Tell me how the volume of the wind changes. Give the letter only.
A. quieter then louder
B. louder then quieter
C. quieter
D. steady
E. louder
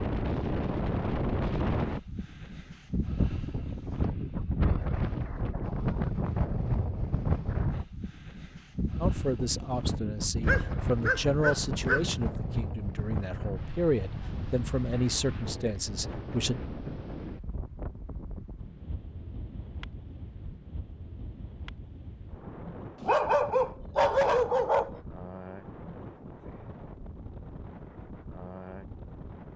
C.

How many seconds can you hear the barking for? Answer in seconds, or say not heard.
4 s.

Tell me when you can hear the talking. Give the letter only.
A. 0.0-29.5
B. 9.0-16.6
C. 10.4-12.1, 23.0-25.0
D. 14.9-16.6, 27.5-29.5
B.